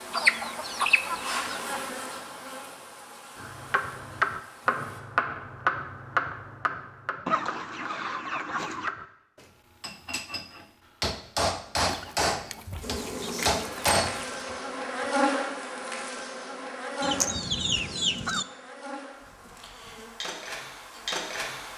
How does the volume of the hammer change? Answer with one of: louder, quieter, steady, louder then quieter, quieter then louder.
quieter then louder.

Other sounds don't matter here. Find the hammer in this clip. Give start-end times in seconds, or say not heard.
3.4-14.7.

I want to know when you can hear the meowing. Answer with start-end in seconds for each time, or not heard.
not heard.